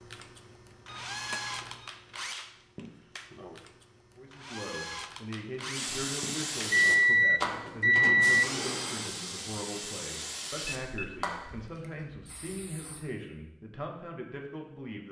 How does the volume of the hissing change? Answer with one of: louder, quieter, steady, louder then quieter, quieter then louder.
quieter.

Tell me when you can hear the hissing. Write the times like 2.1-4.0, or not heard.
5.7-13.1.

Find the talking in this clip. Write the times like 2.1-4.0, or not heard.
4.2-15.0.